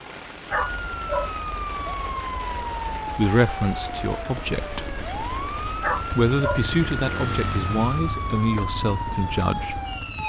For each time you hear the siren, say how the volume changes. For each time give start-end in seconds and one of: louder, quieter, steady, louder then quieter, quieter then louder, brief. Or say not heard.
0.0-10.2 steady.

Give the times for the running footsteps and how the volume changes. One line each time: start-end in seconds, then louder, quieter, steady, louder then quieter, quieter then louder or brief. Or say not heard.
not heard.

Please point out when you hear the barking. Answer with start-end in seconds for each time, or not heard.
0.5-1.3, 5.8-6.6.